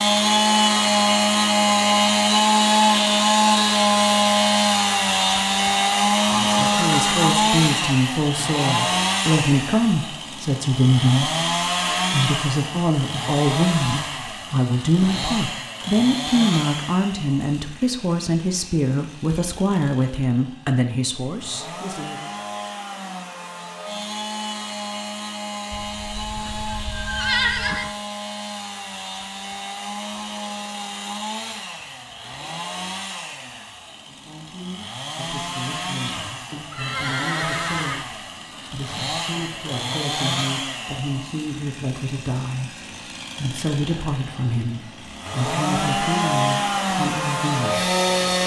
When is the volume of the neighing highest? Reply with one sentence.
The volume of the neighing peaks at 27 seconds.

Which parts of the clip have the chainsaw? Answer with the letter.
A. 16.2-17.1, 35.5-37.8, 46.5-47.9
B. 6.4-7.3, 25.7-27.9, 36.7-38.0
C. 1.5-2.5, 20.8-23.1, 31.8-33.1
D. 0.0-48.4
D.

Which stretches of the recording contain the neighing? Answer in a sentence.
You can hear the neighing from 6.4 to 7.3 s, from 25.7 to 27.9 s and from 36.7 to 38.0 s.